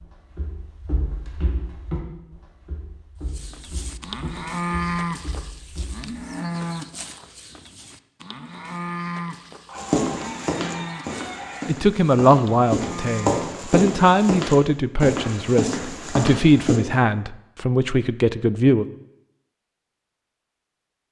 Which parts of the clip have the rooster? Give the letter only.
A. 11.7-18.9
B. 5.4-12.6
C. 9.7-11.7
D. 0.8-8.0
C.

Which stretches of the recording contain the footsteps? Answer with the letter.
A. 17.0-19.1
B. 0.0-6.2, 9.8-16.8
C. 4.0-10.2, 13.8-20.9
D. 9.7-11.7
B.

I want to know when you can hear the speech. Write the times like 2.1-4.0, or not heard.
11.7-18.9.